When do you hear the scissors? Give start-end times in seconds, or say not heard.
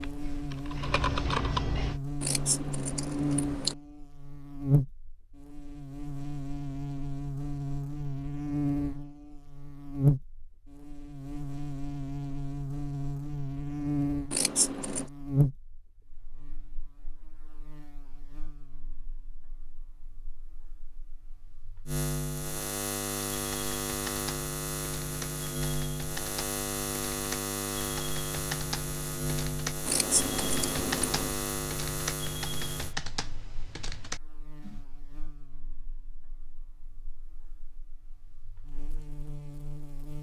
2.2-3.8, 14.3-15.1, 29.9-31.4.